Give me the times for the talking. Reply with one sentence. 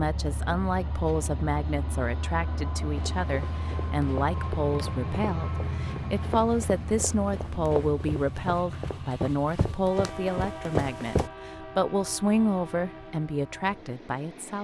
You can hear the talking from 0.0 to 14.5 s.